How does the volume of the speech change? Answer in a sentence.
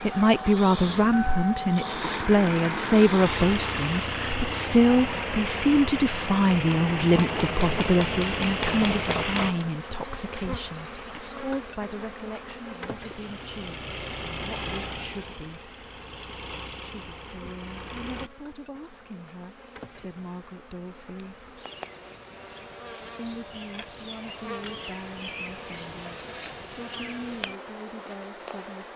The loudness of the speech goes down.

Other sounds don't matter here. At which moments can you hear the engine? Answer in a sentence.
You can hear the engine from 0.0 to 9.5 s and from 12.9 to 18.3 s.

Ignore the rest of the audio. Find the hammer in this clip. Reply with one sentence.
You can hear the hammer from 7.1 to 9.7 s.